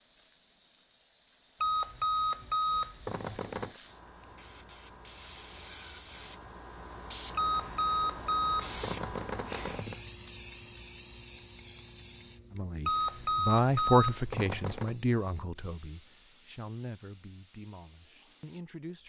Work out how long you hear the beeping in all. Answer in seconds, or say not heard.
7 s.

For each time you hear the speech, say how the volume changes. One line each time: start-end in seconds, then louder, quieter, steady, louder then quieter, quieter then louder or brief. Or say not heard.
12.5-19.0 quieter.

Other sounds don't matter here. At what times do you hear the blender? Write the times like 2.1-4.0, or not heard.
not heard.